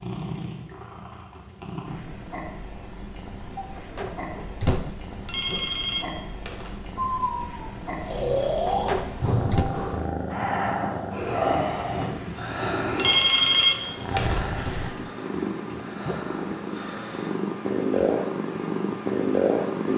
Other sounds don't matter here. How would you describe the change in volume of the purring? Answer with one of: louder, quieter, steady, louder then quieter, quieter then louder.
louder.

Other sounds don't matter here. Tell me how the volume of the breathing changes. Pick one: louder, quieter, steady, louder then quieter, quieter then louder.
quieter.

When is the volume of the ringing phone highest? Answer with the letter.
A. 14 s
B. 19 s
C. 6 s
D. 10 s
A.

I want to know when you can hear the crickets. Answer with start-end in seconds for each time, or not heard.
0.0-19.9.